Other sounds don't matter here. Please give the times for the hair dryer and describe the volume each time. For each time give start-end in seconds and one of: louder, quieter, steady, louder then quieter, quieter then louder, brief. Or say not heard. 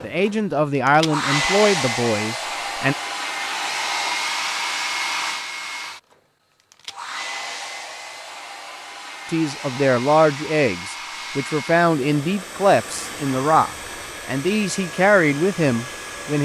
0.0-16.3 quieter.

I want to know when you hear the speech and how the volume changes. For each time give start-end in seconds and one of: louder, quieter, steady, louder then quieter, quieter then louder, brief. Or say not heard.
0.0-3.0 brief
9.3-16.3 steady.